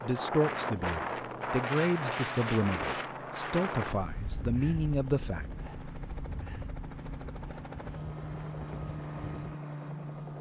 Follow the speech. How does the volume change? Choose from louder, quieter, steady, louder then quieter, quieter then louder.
steady.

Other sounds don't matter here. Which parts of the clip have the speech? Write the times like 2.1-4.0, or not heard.
0.0-5.5.